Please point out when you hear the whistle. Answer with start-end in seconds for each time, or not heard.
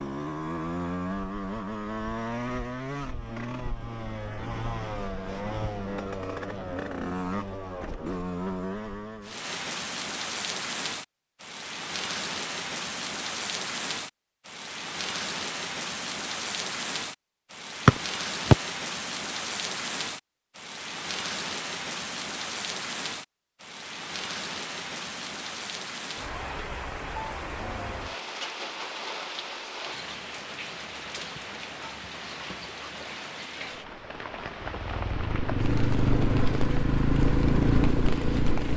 17.9-18.6.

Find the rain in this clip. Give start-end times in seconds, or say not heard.
9.2-38.7.